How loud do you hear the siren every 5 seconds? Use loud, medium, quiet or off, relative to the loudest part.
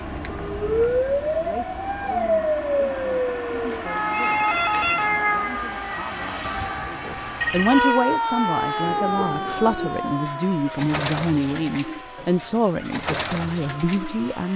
loud, loud, quiet.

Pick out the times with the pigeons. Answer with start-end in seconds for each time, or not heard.
8.8-14.2.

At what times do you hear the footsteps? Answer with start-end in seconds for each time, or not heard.
not heard.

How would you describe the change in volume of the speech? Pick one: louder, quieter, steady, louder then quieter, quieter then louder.
louder.